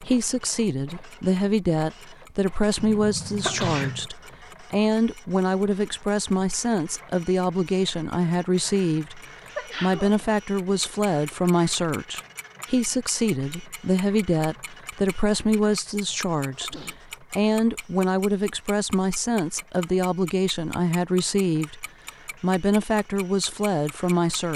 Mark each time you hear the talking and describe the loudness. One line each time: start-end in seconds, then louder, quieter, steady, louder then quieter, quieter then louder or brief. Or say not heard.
0.0-24.5 steady.